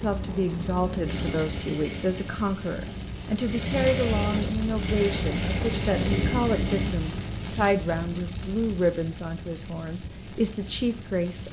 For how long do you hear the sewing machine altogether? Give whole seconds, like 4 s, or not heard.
7 s.